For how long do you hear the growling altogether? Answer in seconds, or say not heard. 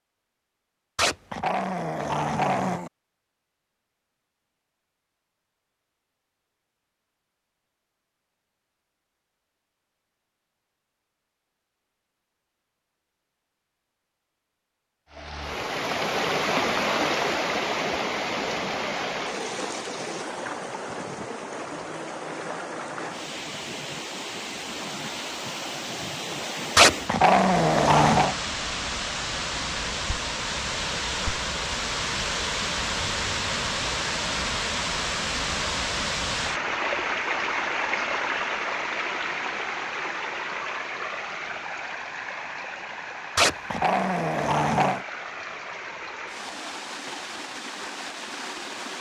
5 s.